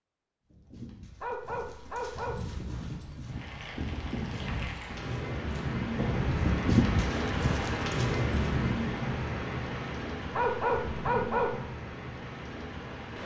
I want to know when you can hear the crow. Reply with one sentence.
The crow can't be heard in this clip.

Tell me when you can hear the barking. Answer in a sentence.
The barking can be heard from 1.2 to 2.5 s and from 10.3 to 11.6 s.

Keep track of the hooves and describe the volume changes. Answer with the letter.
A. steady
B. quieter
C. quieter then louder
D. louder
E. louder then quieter
D.